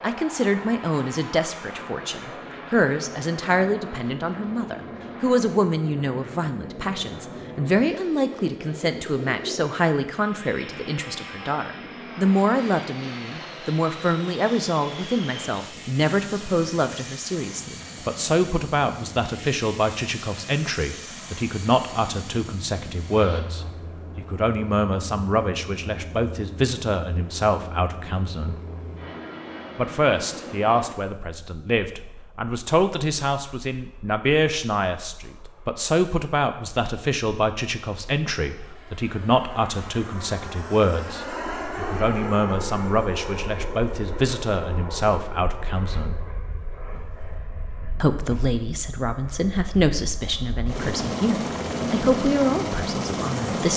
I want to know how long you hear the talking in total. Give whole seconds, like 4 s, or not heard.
51 s.